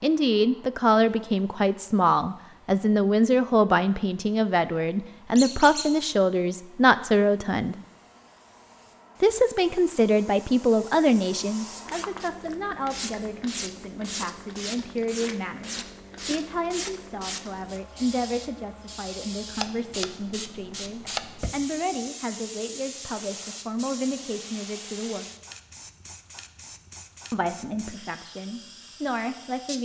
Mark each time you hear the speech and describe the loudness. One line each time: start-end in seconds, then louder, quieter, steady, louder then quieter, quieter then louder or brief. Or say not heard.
0.0-7.8 steady
9.2-25.2 quieter
27.3-29.8 brief.